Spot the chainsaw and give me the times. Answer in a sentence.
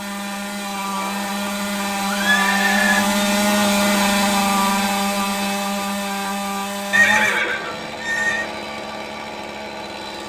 The chainsaw can be heard from 0.0 to 10.2 s.